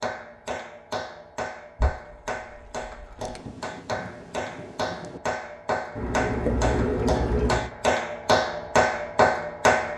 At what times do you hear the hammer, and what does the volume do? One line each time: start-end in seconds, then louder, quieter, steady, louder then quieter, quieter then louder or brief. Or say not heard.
0.0-9.9 louder.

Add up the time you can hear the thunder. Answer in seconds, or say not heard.
2 s.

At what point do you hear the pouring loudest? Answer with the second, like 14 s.
7 s.